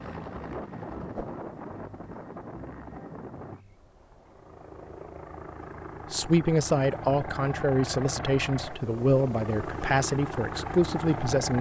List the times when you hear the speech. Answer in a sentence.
The speech can be heard from 6.1 to 11.5 s.